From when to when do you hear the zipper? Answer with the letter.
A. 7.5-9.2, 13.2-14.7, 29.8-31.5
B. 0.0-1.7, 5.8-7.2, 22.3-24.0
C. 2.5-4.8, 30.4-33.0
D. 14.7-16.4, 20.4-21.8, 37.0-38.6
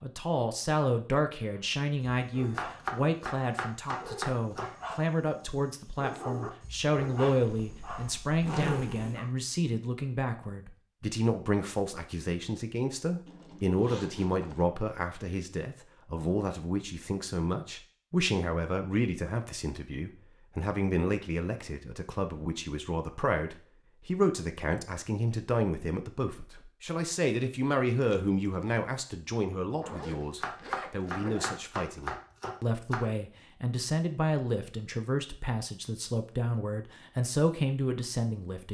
A.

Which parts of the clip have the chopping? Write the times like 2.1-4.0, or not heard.
2.5-4.8, 30.4-33.0.